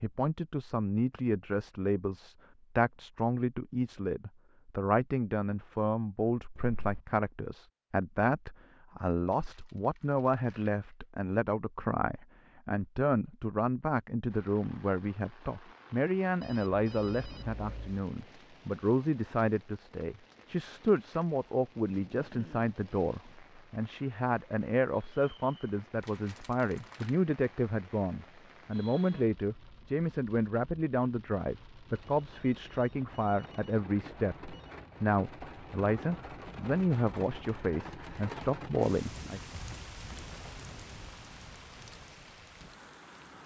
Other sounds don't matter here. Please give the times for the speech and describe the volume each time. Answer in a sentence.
The speech can be heard from 0.0 to 39.4 s, at a steady volume.